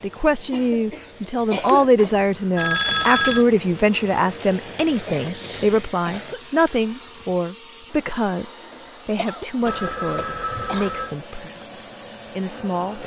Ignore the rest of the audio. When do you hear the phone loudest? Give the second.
3 s.